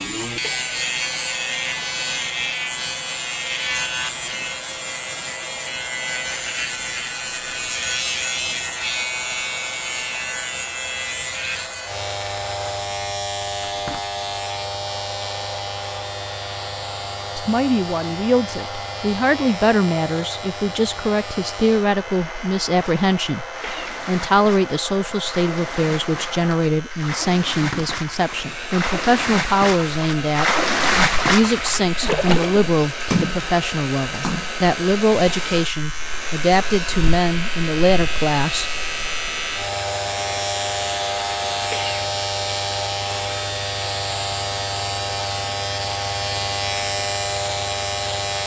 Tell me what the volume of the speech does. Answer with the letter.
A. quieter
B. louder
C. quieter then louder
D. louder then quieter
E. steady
E.